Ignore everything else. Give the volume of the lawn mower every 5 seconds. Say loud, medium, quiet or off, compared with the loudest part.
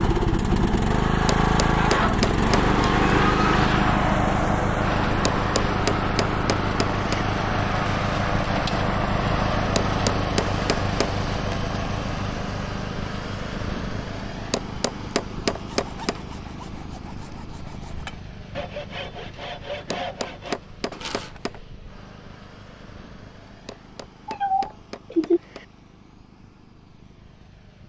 loud, loud, medium, quiet, quiet, quiet.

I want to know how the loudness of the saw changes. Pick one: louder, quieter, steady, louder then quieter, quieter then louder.
louder.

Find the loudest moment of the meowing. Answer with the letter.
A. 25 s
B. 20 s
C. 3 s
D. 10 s
A.